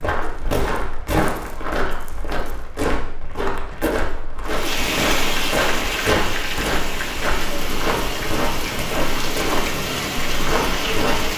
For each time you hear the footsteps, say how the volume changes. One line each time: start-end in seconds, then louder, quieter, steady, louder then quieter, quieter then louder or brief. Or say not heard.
0.0-11.3 steady.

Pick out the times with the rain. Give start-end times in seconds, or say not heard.
4.5-11.3.